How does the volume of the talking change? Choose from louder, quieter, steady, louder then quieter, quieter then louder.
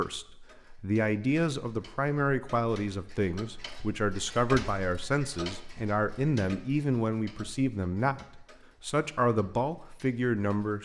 steady.